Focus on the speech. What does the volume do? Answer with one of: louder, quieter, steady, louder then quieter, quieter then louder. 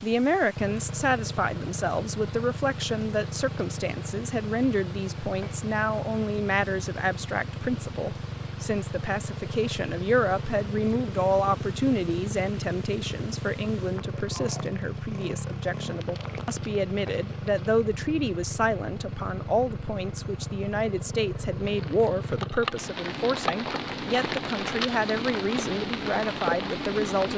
steady.